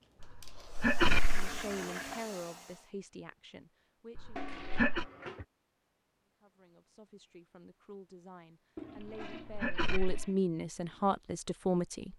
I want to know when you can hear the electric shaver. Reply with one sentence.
You can't hear the electric shaver here.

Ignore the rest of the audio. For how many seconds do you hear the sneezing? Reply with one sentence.
You can hear the sneezing for 3 seconds altogether.